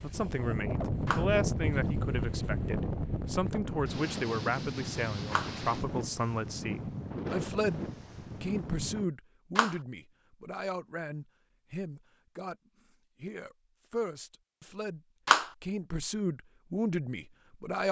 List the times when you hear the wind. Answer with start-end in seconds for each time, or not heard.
0.0-9.1.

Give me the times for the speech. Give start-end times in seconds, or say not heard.
0.0-7.8, 8.4-15.0, 15.6-17.8.